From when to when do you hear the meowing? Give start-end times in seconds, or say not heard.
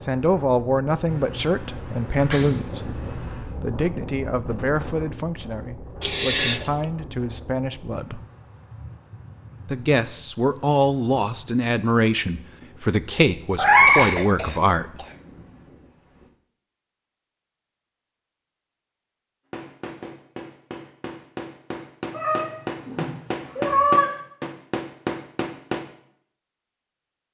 1.1-3.5, 13.6-14.2, 22.1-24.1.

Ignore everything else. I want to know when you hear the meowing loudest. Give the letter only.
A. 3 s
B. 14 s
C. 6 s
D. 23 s
B.